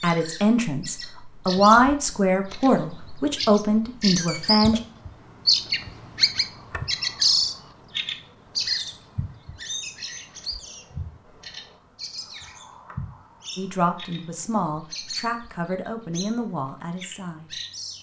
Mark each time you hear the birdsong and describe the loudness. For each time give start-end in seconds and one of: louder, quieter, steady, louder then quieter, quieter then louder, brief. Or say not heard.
0.0-17.9 louder then quieter.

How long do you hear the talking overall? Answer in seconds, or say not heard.
9 s.